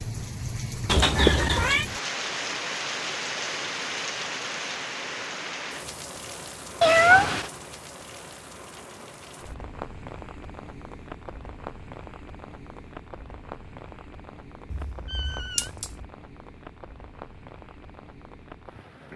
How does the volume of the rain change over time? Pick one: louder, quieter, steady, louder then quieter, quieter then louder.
quieter.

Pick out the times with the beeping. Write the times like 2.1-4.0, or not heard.
not heard.